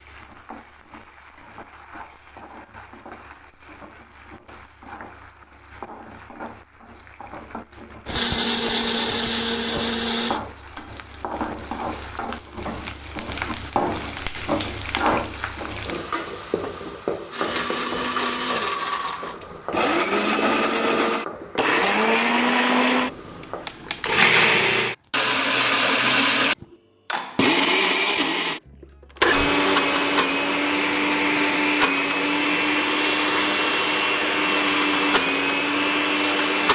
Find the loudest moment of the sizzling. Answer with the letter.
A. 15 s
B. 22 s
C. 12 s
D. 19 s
A.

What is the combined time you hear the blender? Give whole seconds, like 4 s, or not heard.
22 s.